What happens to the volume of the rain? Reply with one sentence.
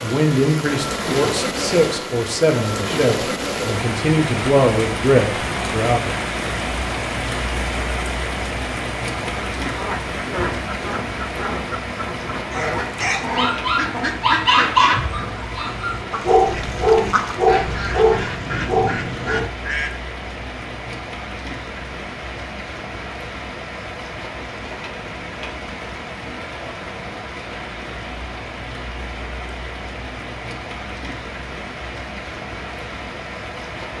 The volume of the rain goes down.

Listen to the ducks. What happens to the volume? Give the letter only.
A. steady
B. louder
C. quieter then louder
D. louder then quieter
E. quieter
A.